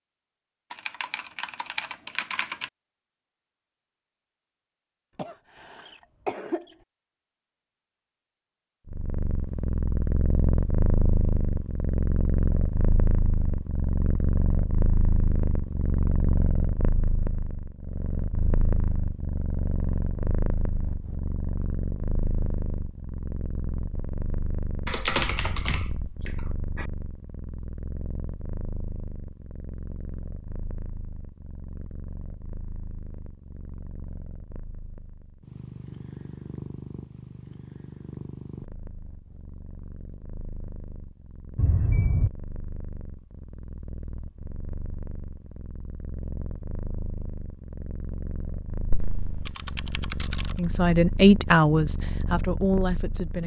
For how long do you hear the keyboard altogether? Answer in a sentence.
The keyboard can be heard for 6 seconds in total.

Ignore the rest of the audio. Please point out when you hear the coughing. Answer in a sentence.
The coughing can be heard from 5.2 to 6.8 s and from 41.5 to 42.3 s.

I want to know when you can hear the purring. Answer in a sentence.
The purring can be heard from 8.8 to 53.4 s.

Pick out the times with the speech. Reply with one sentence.
You can hear the speech from 50.5 to 53.4 s.